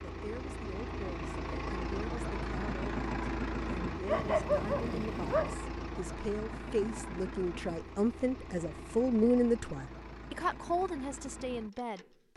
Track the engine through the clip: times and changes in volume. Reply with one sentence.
The engine can be heard from 0.0 to 12.3 s, getting quieter.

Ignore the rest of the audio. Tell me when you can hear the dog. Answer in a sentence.
You can hear the dog from 4.0 to 5.5 s.